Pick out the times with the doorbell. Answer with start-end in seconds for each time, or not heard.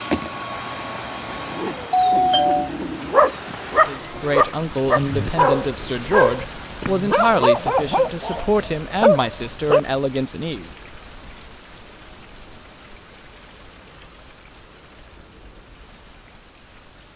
1.9-2.7.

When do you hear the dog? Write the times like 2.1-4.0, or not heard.
1.4-9.8.